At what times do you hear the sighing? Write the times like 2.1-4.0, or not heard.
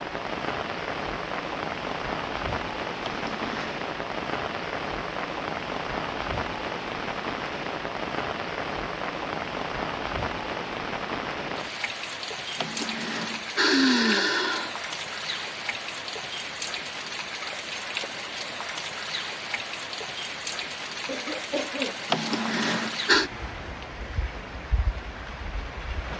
3.0-3.8, 12.6-14.8, 22.1-23.3.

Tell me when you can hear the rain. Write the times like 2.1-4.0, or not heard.
0.0-26.1.